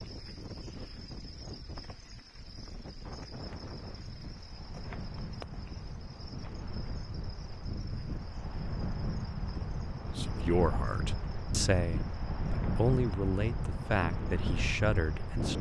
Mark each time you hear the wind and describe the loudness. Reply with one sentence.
The wind can be heard from 0.0 to 15.5 s, getting louder.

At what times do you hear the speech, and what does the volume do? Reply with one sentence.
You can hear the speech from 10.2 to 15.5 s, at a steady volume.